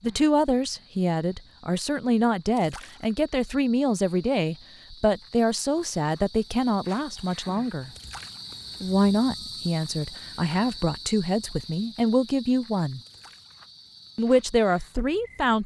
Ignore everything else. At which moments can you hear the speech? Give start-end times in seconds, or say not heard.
0.0-7.9, 8.8-13.0, 14.2-15.6.